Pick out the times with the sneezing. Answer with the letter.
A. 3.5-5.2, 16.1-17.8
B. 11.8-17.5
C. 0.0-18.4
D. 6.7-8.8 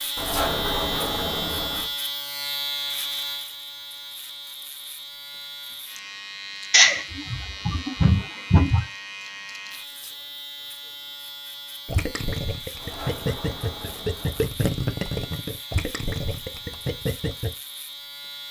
D.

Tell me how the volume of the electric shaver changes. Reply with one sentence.
The volume of the electric shaver goes down.